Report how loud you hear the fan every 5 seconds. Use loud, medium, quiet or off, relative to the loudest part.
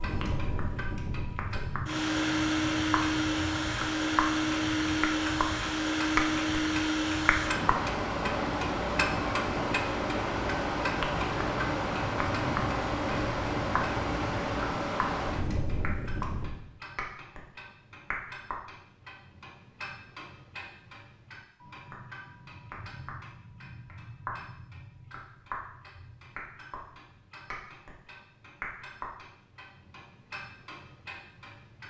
loud, loud, loud, medium, off, off, off.